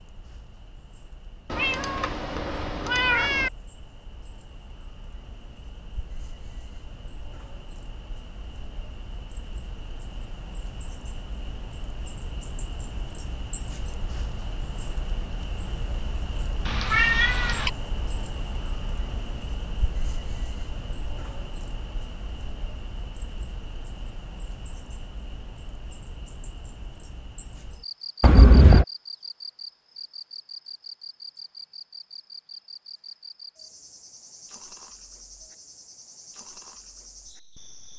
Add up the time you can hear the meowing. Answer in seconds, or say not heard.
4 s.